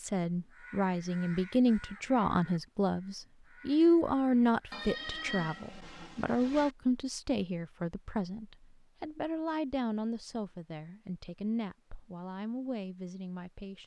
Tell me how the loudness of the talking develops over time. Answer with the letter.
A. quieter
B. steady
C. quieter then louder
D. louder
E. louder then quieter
A.